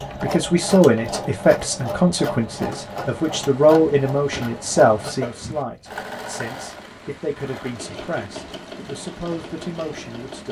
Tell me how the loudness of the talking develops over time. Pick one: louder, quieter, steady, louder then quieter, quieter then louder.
quieter.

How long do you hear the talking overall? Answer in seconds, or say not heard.
10 s.